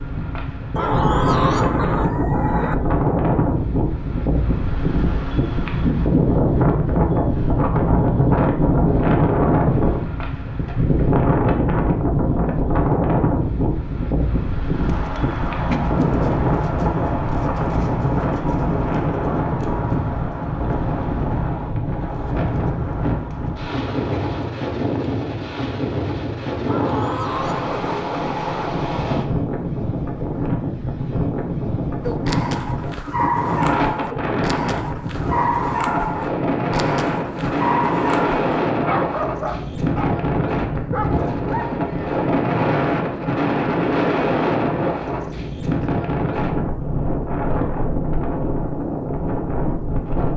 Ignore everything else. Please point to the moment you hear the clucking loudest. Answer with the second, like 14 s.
1 s.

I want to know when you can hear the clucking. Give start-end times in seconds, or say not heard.
0.8-2.8, 26.6-28.6.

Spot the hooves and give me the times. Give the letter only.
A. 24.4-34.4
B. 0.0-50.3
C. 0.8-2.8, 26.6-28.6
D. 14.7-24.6
D.